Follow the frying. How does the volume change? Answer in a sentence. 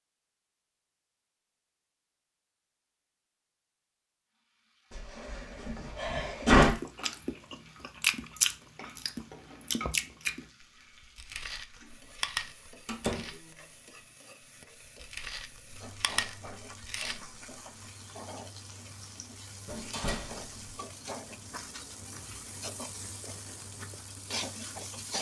The volume of the frying goes up.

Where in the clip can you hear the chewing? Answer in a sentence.
The chewing can be heard from 6.4 to 10.4 s, from 11.2 to 13.4 s and from 14.9 to 17.2 s.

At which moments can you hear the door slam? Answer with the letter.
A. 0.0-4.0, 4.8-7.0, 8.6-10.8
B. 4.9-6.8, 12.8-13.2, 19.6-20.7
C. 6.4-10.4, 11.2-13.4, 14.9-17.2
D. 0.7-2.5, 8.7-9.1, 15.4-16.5
B.